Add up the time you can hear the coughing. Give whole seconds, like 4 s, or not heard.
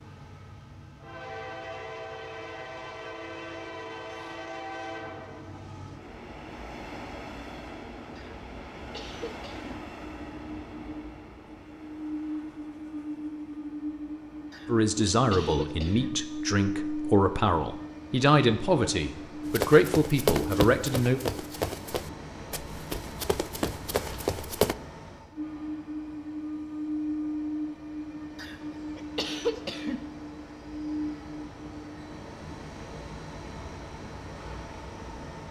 5 s.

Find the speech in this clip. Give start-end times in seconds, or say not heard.
14.7-21.2.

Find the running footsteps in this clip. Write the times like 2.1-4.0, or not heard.
19.4-24.8.